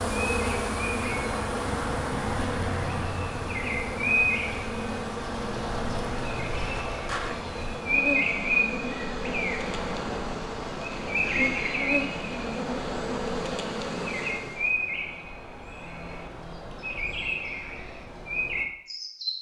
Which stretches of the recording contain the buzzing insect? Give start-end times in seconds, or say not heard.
0.0-14.8.